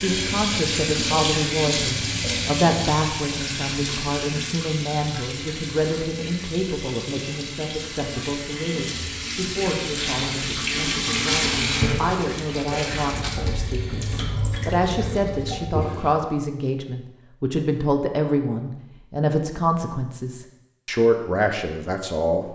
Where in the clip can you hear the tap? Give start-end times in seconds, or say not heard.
0.0-16.1.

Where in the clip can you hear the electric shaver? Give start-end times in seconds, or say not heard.
not heard.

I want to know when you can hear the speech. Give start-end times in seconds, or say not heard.
0.0-22.4.